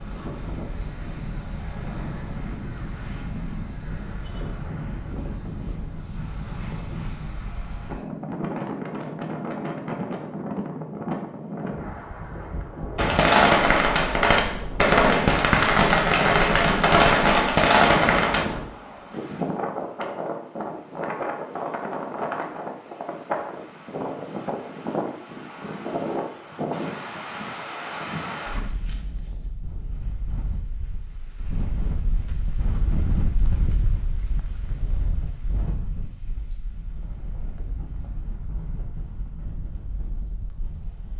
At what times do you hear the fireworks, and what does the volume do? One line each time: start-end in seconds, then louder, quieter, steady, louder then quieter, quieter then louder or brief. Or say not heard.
12.9-18.4 steady.